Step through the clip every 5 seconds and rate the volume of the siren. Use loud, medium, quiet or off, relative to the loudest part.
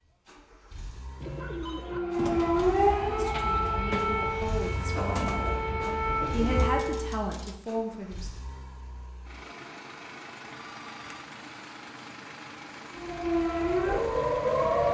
loud, medium, loud.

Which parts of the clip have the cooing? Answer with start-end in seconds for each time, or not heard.
1.2-6.7.